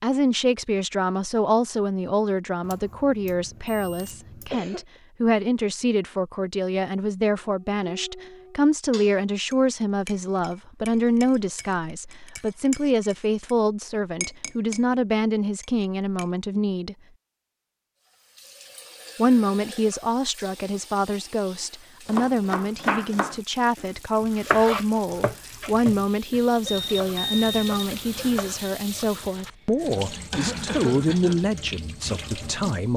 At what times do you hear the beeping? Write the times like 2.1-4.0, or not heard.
2.6-4.5, 26.6-28.7.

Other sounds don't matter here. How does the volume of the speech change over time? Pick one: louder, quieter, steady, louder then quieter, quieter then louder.
steady.